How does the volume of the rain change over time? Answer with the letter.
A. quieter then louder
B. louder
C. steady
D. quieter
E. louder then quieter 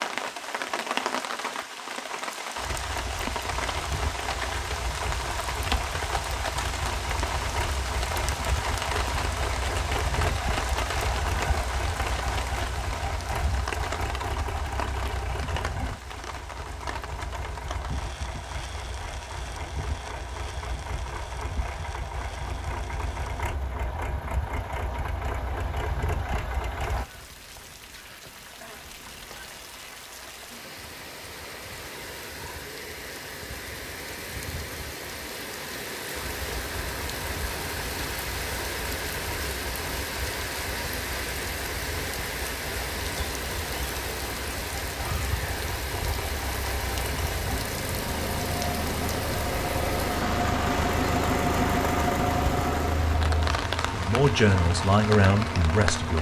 A.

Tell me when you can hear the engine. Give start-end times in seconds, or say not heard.
2.5-27.1, 36.1-56.1.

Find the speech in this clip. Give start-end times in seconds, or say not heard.
53.9-56.1.